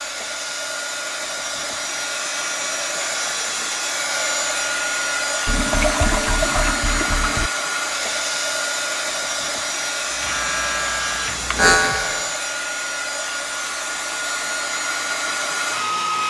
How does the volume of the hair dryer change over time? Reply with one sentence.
The loudness of the hair dryer stays about the same.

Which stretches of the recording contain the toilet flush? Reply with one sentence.
The toilet flush can be heard from 5.5 to 7.5 s.